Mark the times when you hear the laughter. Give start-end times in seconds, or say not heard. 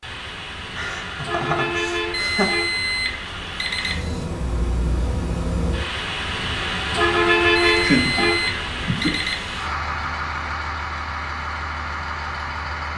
0.8-2.5, 7.7-9.2.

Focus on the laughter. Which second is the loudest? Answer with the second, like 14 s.
8 s.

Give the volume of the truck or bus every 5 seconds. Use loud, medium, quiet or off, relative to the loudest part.
medium, loud, medium.